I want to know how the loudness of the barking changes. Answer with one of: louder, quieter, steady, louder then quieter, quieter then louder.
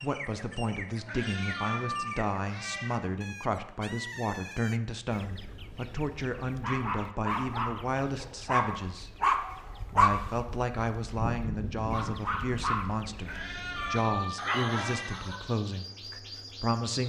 louder then quieter.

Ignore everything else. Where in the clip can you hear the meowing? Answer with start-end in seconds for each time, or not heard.
1.1-3.0, 13.2-15.2.